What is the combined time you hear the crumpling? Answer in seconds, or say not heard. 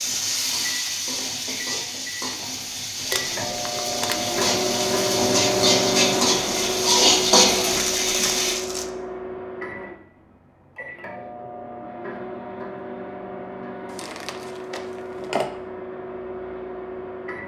4 s.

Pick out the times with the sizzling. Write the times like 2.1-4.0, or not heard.
0.0-8.6.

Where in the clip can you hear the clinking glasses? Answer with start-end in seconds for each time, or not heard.
not heard.